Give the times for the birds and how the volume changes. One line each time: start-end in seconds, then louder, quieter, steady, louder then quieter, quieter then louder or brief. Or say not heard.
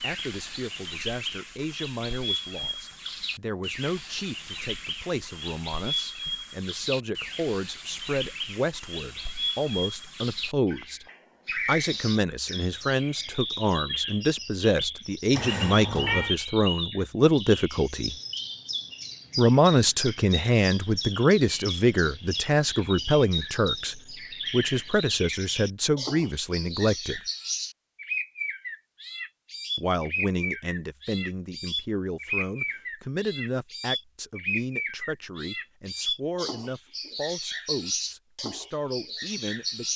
0.0-39.9 steady.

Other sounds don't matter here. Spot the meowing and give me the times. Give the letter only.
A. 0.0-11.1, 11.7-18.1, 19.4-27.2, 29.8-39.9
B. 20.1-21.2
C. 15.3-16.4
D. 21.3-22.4
C.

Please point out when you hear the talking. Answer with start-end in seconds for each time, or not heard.
0.0-11.1, 11.7-18.1, 19.4-27.2, 29.8-39.9.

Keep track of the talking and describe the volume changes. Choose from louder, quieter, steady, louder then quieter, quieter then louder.
louder then quieter.